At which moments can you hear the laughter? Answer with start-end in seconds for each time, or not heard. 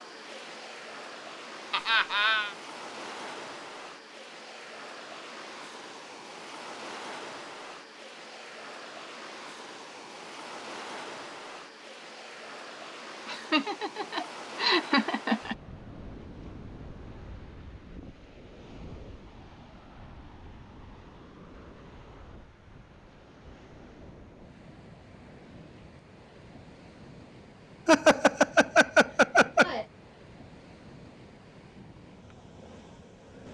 1.7-2.5, 13.2-15.6, 27.9-29.9.